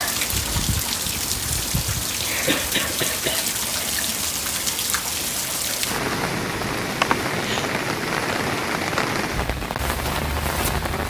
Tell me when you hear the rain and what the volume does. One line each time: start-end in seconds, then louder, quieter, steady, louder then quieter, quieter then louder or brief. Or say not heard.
0.0-11.0 steady.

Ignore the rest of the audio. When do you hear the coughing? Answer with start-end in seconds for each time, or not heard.
2.5-3.5, 7.0-7.7.